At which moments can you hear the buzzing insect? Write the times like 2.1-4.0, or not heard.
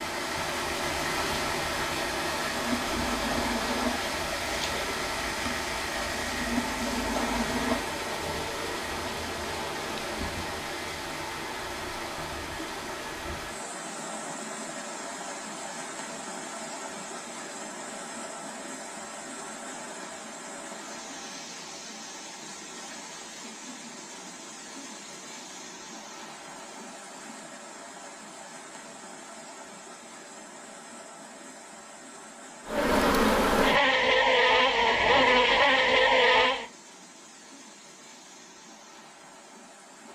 2.5-10.7, 32.6-36.6.